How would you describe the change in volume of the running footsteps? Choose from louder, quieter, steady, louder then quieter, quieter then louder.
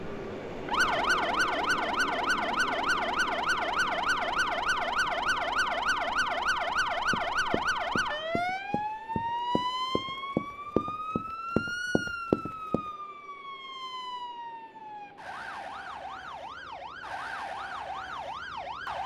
louder.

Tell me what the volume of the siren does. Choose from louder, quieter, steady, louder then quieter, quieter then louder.
quieter.